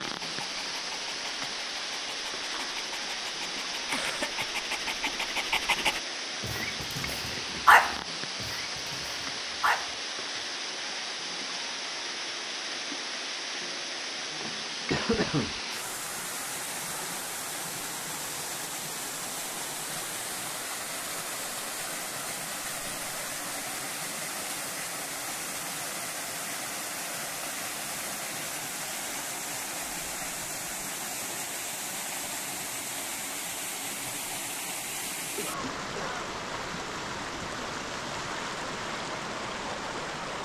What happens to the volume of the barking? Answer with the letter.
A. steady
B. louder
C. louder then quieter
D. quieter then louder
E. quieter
C.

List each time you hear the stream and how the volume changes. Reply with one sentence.
The stream can be heard from 0.0 to 40.3 s, at a steady volume.